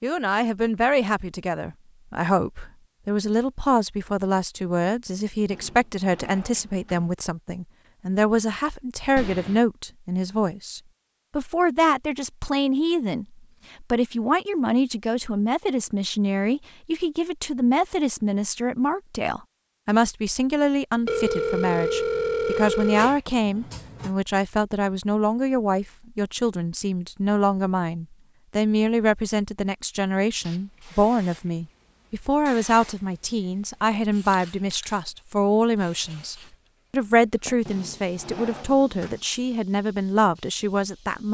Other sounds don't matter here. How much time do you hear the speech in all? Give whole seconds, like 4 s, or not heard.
41 s.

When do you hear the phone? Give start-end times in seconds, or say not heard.
9.2-9.6, 21.1-23.2.